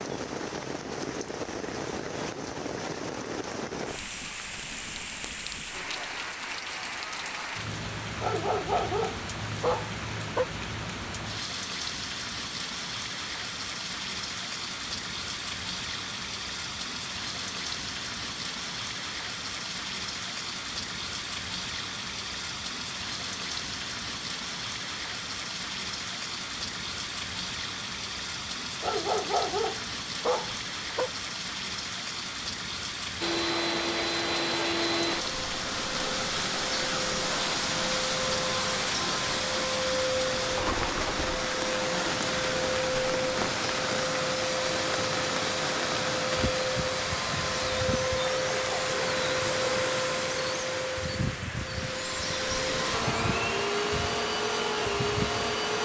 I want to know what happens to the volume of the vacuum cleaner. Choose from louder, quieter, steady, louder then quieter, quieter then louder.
steady.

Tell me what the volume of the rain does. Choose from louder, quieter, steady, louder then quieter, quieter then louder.
steady.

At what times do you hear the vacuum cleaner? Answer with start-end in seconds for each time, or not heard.
33.2-55.8.